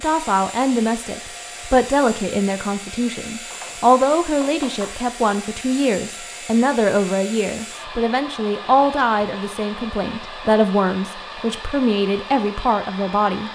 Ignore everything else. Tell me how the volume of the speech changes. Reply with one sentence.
The loudness of the speech stays about the same.